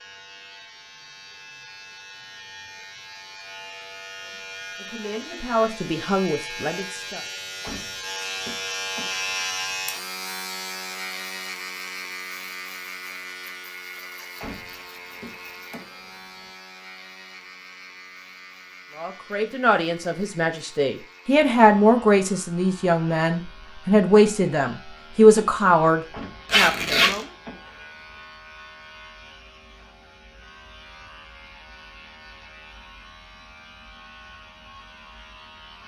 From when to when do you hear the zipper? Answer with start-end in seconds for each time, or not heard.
26.4-27.2.